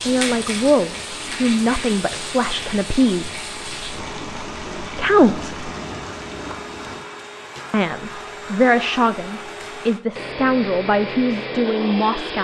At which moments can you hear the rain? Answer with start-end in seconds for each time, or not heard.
0.0-7.0.